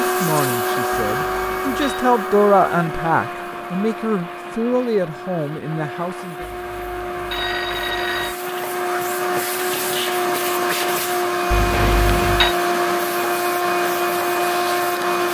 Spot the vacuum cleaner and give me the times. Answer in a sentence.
You can hear the vacuum cleaner from 0.0 to 15.3 s.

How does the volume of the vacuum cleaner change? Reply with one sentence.
The volume of the vacuum cleaner goes down, then up.